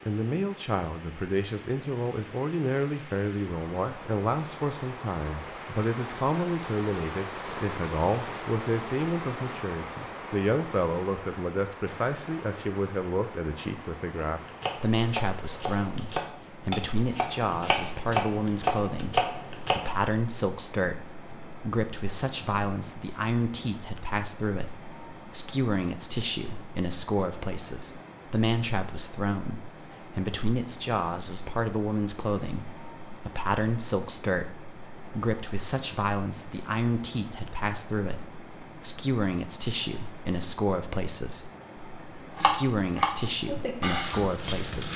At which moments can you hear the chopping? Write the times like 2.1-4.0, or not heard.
14.3-20.1, 42.4-44.9.